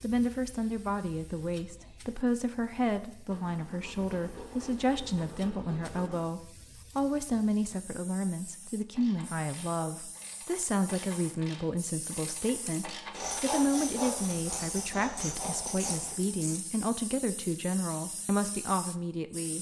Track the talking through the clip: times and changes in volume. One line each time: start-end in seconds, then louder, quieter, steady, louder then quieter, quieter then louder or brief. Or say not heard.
0.0-19.5 steady.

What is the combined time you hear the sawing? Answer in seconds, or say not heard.
6 s.